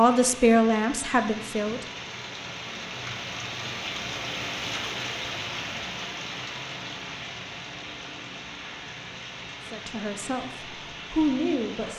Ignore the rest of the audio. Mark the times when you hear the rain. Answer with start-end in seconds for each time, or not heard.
0.0-11.9.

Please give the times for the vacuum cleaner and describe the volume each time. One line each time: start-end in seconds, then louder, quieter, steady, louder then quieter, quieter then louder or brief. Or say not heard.
not heard.